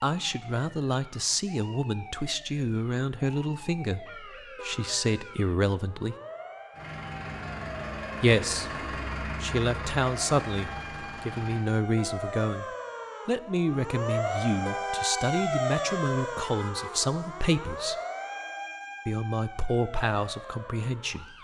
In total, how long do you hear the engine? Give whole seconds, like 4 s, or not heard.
5 s.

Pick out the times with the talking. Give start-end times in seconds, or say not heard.
0.0-6.2, 8.2-12.7, 13.2-17.9, 19.1-21.2.